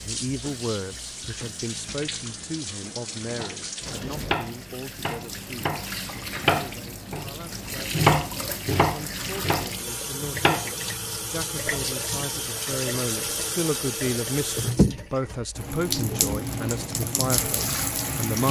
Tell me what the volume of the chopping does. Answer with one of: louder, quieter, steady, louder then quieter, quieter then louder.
louder then quieter.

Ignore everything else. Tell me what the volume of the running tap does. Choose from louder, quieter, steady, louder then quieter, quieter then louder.
louder.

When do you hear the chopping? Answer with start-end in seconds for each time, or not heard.
3.4-10.7.